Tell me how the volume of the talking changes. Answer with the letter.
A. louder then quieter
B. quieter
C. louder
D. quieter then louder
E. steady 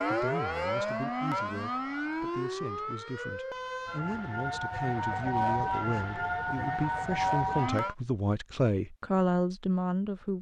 C.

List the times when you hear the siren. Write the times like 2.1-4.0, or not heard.
0.0-8.0.